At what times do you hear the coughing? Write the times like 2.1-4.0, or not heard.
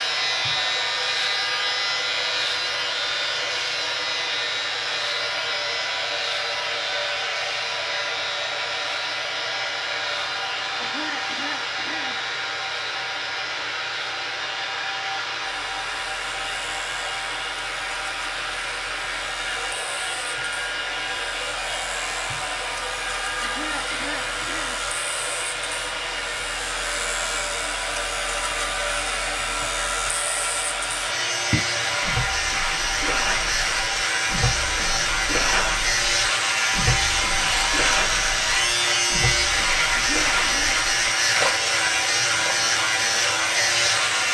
10.8-12.3, 23.4-24.9, 39.9-40.8.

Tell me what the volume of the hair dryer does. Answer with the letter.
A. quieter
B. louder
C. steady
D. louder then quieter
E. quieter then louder
C.